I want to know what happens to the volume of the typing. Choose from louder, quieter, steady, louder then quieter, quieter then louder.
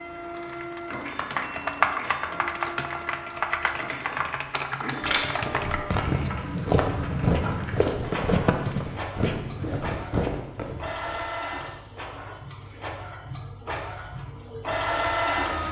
quieter.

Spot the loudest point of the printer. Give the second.
15 s.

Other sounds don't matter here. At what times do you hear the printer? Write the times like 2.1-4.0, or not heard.
0.0-15.6.